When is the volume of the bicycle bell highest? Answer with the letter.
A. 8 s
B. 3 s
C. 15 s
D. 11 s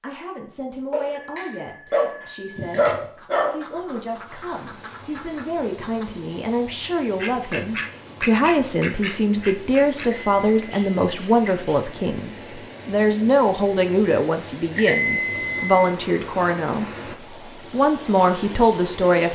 C.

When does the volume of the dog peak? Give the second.
3 s.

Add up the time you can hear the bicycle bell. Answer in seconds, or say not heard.
4 s.